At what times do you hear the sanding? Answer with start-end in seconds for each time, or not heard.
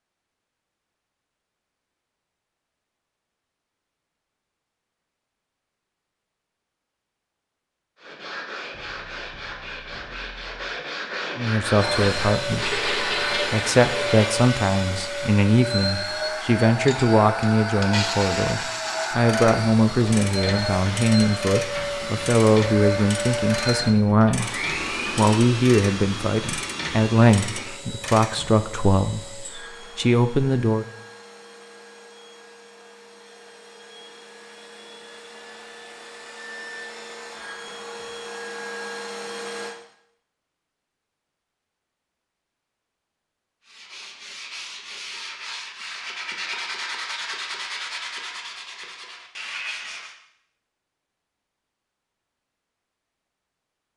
8.0-14.5, 43.6-50.1.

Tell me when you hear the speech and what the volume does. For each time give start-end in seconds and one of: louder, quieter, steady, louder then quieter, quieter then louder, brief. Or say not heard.
11.3-30.9 steady.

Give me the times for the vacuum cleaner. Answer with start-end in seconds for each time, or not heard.
11.8-39.8.